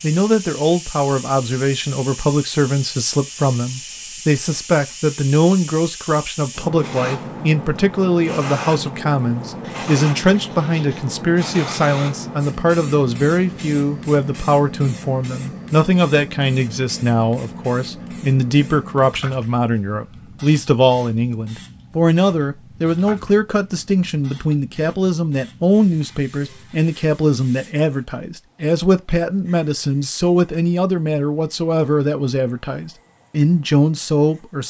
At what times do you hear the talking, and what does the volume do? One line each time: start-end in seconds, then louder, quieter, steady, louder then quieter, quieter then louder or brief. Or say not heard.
0.0-34.6 steady.